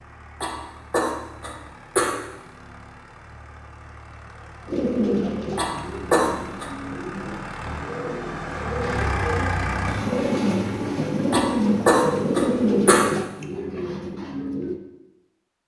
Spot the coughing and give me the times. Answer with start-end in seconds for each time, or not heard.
0.4-2.2, 5.5-6.7, 11.3-13.1.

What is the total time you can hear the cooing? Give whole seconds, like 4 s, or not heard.
10 s.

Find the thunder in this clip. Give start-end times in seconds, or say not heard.
not heard.